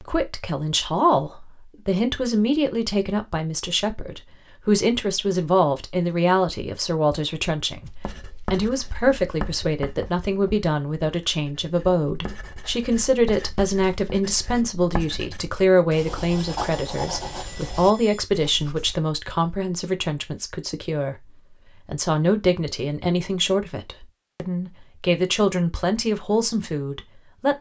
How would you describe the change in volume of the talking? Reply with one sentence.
The loudness of the talking stays about the same.